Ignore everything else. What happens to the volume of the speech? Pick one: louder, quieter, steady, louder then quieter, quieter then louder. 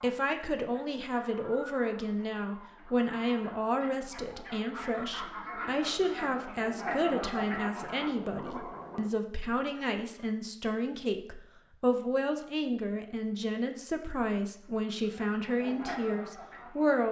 steady.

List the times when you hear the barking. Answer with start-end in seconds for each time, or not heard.
not heard.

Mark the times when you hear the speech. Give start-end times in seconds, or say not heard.
0.0-17.0.